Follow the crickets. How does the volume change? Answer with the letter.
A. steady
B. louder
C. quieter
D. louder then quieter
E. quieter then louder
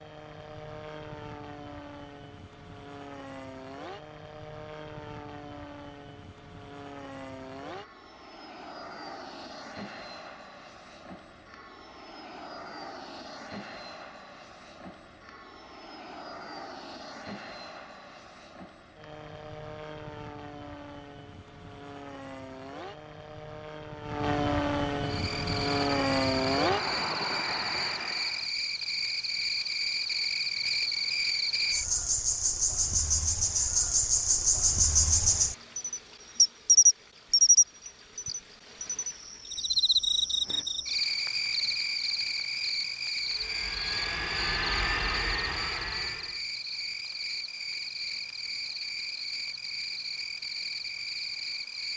D.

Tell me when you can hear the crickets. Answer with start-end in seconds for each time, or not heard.
25.0-51.9.